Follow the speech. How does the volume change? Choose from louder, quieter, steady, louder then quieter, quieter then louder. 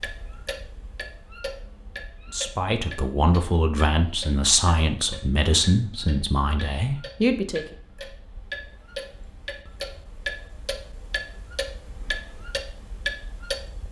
steady.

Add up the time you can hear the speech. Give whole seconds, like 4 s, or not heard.
5 s.